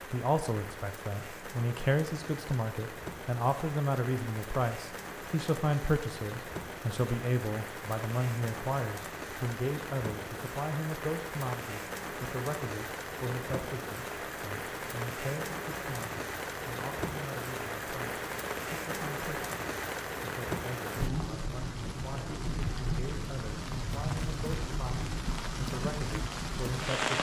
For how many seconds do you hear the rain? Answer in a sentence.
The rain can be heard for 27 seconds in total.